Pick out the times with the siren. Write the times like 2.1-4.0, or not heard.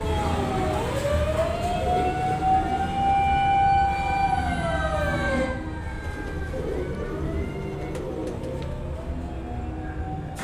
0.0-10.4.